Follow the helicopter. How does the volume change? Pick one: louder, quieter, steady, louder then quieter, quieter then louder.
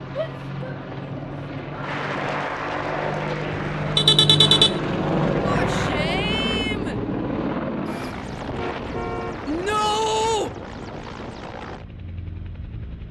louder then quieter.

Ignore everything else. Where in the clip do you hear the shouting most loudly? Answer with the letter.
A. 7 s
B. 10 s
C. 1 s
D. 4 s
B.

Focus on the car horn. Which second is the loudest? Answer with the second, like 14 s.
4 s.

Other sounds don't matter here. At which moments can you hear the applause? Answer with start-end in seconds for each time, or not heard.
1.8-4.0.